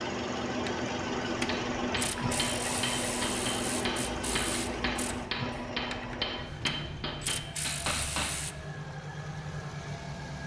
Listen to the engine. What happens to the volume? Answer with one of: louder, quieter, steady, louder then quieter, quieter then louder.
quieter.